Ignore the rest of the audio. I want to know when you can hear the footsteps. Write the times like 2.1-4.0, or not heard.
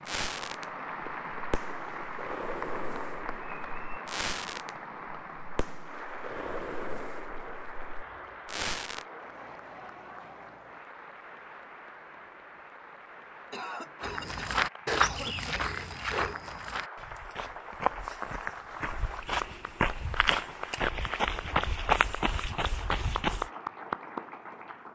14.0-23.5.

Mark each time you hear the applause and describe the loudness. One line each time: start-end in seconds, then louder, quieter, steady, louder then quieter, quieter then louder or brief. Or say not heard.
0.0-24.8 quieter then louder.